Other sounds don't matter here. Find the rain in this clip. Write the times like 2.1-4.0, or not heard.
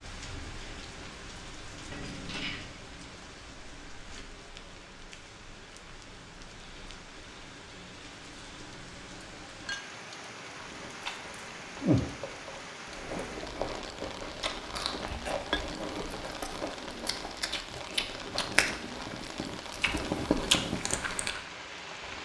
0.0-22.1.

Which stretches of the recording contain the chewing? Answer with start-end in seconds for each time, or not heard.
10.6-21.4.